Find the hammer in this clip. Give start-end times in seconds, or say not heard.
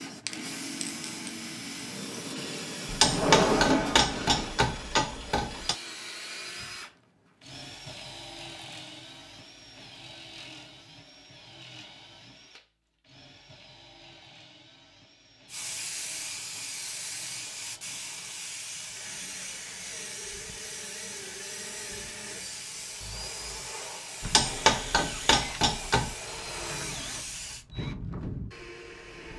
2.9-5.8, 24.2-26.1.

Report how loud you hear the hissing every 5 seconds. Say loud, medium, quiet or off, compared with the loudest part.
loud, off, off, loud, loud, loud.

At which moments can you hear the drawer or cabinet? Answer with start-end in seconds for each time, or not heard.
3.0-4.5.